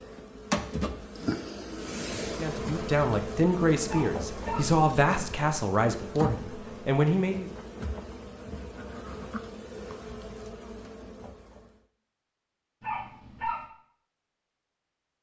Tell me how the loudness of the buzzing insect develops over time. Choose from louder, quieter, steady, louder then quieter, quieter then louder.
quieter.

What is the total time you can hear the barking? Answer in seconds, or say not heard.
2 s.